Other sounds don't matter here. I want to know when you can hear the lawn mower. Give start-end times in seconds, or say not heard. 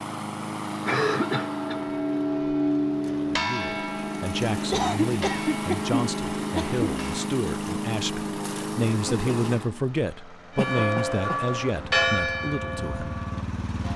0.0-13.9.